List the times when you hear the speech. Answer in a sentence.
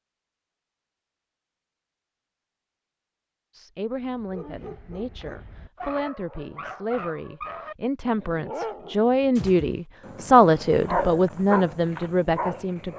You can hear the speech from 3.5 to 12.9 s.